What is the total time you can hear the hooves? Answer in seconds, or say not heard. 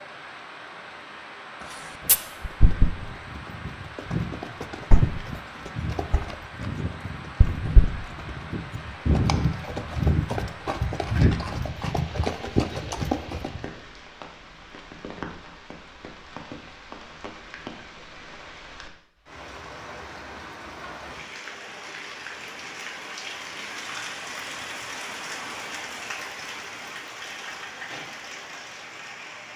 12 s.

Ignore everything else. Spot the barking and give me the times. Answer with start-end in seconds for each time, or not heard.
not heard.